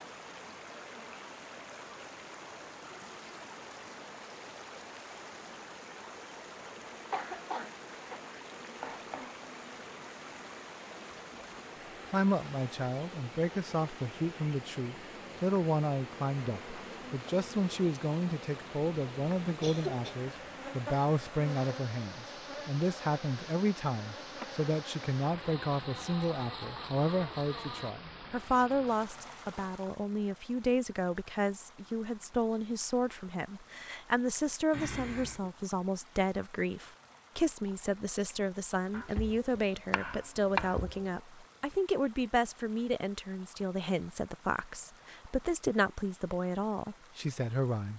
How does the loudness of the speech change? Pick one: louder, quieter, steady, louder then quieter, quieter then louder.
steady.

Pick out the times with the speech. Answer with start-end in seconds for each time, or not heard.
12.1-47.9.